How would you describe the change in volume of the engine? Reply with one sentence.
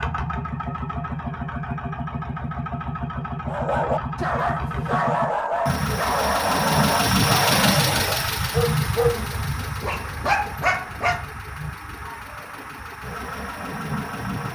The volume of the engine goes up, then down.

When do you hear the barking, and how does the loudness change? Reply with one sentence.
The barking can be heard from 3.5 to 11.2 s, at a steady volume.